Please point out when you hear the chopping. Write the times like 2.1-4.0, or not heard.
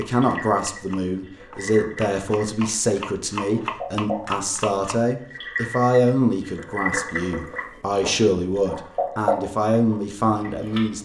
0.0-5.0.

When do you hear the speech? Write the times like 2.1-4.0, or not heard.
0.0-10.9.